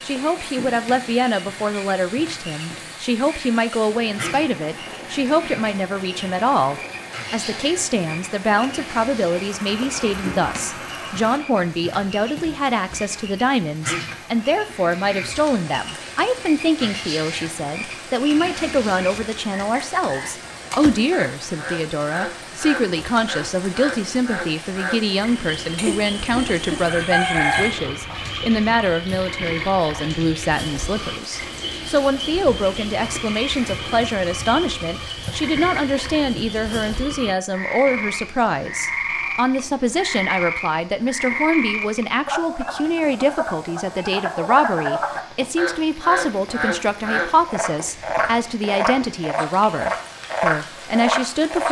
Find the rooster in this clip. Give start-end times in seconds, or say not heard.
25.8-27.8.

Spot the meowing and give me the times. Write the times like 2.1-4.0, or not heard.
not heard.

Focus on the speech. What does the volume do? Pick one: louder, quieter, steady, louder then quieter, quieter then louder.
steady.